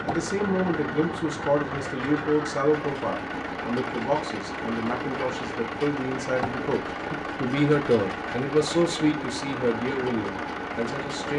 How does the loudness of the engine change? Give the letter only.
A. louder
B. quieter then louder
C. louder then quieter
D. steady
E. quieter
D.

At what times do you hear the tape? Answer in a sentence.
The tape can't be heard in this clip.